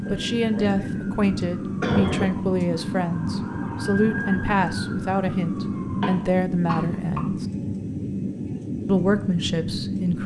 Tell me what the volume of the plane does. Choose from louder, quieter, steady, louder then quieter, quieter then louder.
steady.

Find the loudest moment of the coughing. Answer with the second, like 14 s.
2 s.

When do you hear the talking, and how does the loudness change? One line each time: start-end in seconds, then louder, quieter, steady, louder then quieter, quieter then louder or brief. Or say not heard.
0.1-7.5 steady
8.8-10.2 brief.